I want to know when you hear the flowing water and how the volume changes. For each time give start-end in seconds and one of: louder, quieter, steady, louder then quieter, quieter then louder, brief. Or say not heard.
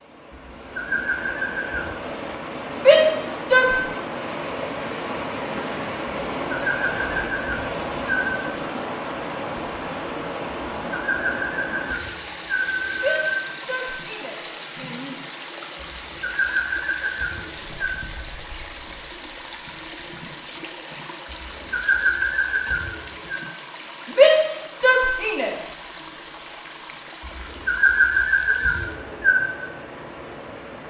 0.0-30.8 quieter.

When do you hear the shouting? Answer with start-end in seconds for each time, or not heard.
2.8-3.8, 13.0-15.2, 24.1-25.6.